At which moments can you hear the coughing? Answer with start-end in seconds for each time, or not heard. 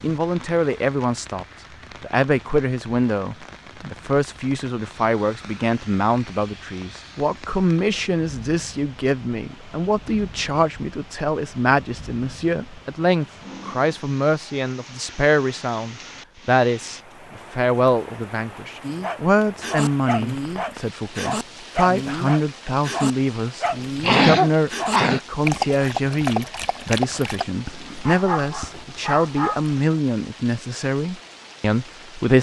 24.0-25.2.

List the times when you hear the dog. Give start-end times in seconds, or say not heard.
18.8-29.8.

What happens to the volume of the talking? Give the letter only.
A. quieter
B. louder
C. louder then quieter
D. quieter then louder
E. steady
E.